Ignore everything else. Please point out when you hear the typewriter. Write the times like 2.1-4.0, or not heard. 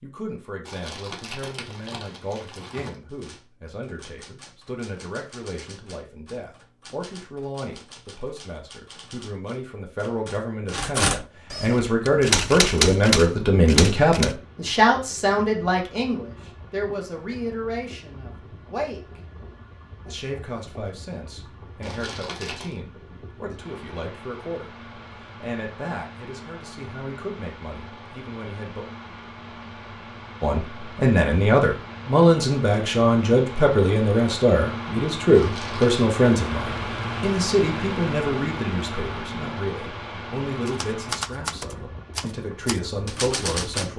3.0-14.3, 40.6-43.9.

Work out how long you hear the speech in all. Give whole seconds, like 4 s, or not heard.
41 s.